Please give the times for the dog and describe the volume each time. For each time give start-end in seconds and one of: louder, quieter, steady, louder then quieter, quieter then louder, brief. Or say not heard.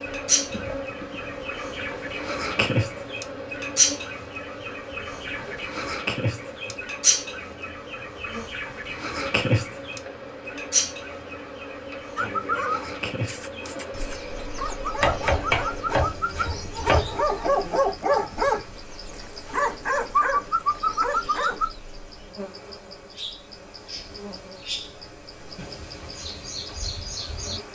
12.2-21.7 louder.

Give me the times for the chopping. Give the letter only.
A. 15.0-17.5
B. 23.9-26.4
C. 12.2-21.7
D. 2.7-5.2
A.